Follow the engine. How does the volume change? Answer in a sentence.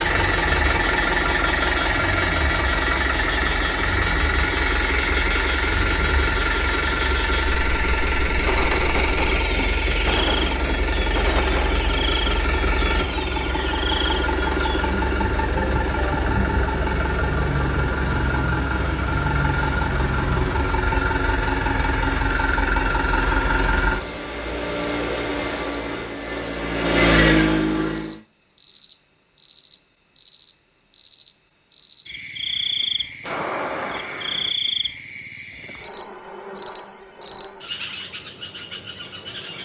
The loudness of the engine stays about the same.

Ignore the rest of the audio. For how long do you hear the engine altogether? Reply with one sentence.
You can hear the engine for 28 seconds altogether.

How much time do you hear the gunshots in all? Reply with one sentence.
The gunshots can be heard for 5 seconds in total.